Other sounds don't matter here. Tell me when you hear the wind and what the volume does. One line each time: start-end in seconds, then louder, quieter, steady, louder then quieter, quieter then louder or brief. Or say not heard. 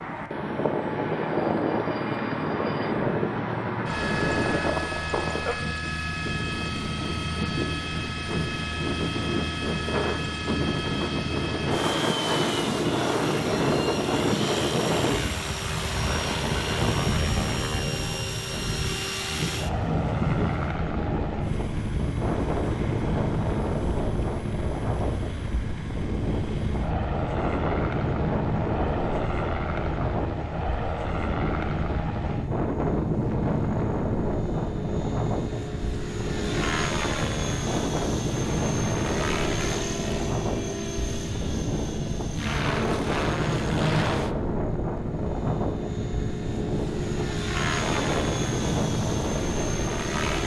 0.0-50.4 steady.